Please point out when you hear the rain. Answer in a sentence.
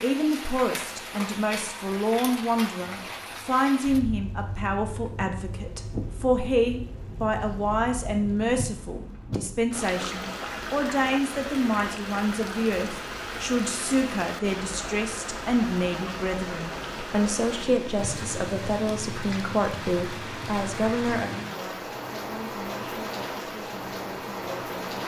The rain can be heard from 0.0 to 25.0 s.